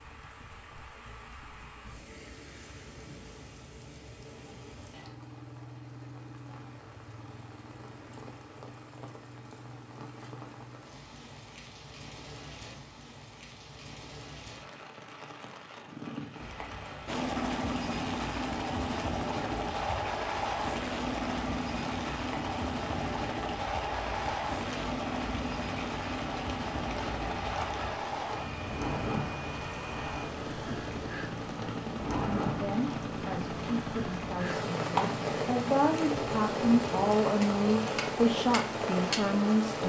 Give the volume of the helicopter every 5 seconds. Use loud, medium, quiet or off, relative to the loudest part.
off, off, off, loud, loud, loud, medium, medium.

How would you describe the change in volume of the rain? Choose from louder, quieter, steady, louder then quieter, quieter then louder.
louder.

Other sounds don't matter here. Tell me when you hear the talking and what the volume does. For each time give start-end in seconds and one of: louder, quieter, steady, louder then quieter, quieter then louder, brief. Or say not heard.
32.1-39.8 louder.